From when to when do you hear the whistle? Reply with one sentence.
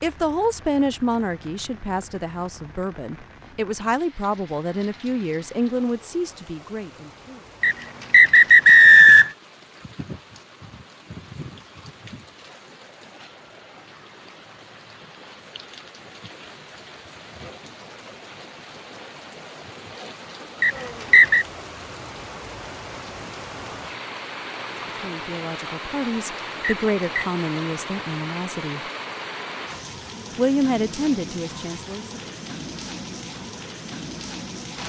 You can hear the whistle from 7.6 to 9.3 s, from 20.6 to 21.4 s and from 26.6 to 27.2 s.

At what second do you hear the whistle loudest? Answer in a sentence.
The volume of the whistle peaks at 9 seconds.